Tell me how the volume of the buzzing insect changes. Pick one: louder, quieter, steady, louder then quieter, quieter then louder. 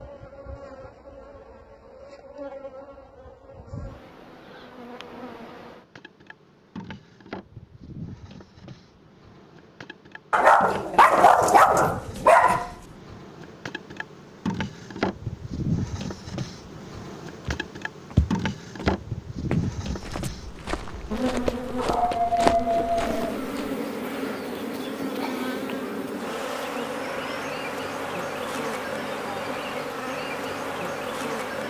louder.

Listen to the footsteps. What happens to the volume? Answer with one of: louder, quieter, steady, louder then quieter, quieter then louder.
quieter then louder.